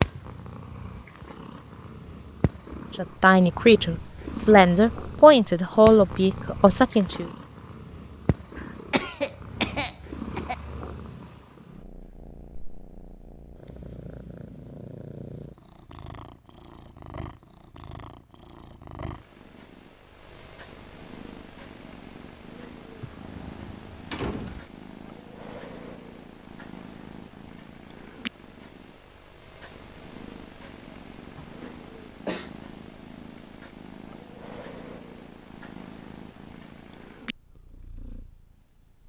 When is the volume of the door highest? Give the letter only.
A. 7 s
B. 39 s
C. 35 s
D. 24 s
D.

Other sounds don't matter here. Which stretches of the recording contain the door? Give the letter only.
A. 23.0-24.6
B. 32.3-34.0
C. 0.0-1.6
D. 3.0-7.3
A.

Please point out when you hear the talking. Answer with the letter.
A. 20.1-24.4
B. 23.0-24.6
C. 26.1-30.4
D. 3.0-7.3
D.